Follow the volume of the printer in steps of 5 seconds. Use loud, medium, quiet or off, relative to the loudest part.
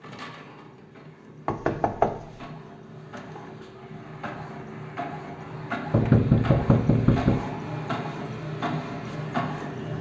medium, loud.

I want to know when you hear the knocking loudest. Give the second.
6 s.